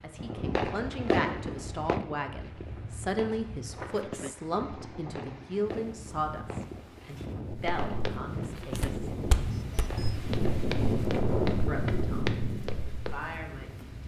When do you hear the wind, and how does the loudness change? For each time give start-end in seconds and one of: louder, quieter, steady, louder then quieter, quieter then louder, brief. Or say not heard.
0.0-14.0 louder.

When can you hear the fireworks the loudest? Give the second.
1 s.